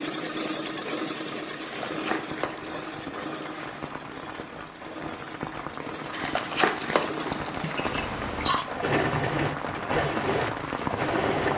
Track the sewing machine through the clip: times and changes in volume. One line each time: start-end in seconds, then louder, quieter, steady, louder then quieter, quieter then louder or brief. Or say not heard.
0.0-11.5 quieter then louder.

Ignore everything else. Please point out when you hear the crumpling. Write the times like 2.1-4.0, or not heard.
1.6-3.9, 6.1-8.1.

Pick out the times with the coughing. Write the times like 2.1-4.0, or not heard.
7.6-8.7.